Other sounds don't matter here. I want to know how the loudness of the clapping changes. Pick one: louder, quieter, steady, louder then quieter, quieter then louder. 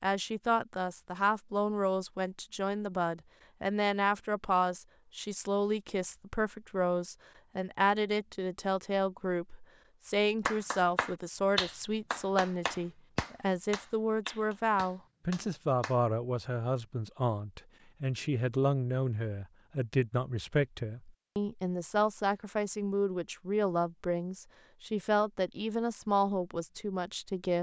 quieter.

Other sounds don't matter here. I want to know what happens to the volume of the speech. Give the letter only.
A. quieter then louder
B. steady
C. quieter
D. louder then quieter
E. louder
B.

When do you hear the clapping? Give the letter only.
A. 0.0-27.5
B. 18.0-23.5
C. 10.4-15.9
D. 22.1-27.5
C.